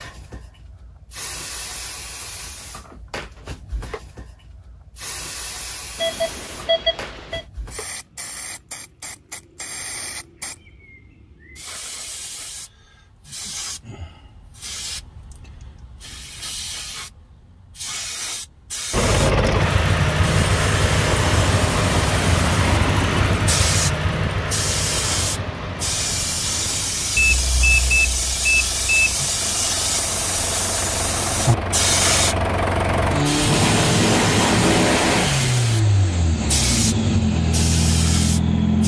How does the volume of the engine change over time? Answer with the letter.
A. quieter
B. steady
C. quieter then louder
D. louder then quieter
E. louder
C.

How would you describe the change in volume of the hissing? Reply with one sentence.
The loudness of the hissing goes up.